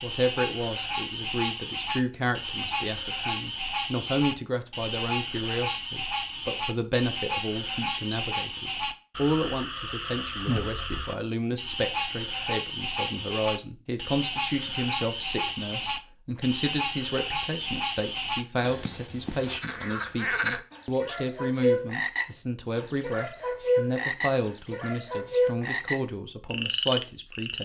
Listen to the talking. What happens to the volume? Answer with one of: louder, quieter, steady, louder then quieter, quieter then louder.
steady.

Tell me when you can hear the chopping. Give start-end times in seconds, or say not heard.
not heard.